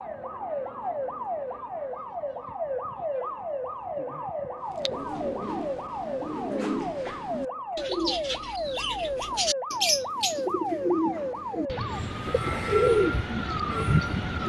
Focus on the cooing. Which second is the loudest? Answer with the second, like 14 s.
13 s.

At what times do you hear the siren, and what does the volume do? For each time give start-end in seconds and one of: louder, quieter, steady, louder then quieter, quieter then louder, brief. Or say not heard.
0.0-14.4 steady.